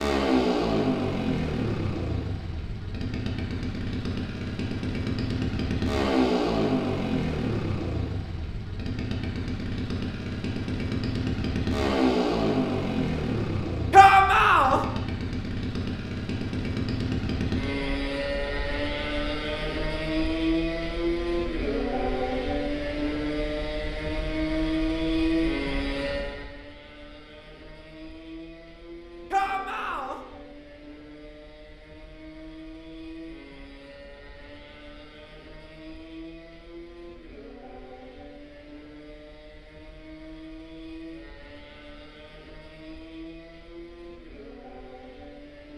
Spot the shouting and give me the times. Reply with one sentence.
You can hear the shouting from 13.9 to 14.8 s and from 29.3 to 30.2 s.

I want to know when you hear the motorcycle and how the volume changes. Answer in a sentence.
You can hear the motorcycle from 0.0 to 45.7 s, getting quieter.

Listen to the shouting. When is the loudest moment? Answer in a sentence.
The loudest moment of the shouting is at 14 seconds.